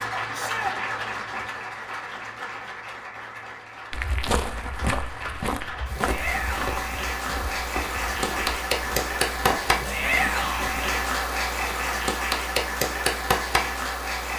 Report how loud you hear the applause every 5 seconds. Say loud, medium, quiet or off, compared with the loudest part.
medium, loud, loud.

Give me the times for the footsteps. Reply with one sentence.
The footsteps can be heard from 3.9 to 10.8 s.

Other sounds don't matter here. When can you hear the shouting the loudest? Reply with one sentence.
The loudest moment of the shouting is at 10 seconds.